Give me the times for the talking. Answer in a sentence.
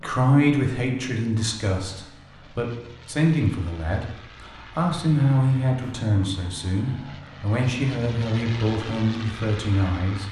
You can hear the talking from 0.0 to 4.0 s and from 4.8 to 10.2 s.